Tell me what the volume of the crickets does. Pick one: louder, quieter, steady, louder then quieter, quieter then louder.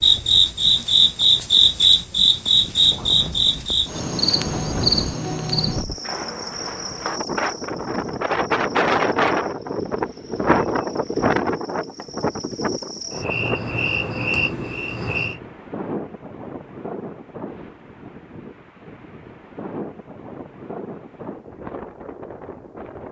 quieter then louder.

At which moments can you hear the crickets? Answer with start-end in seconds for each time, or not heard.
0.0-15.4.